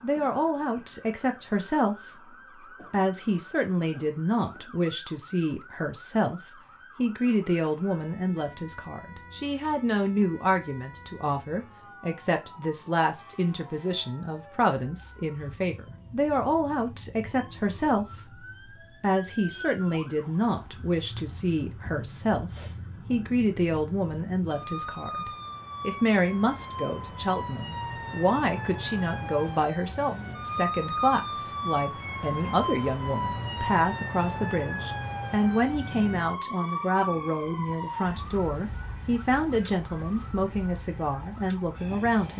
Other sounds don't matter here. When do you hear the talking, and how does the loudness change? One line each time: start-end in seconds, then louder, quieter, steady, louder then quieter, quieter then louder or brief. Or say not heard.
0.0-42.3 steady.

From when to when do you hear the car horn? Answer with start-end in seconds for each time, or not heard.
not heard.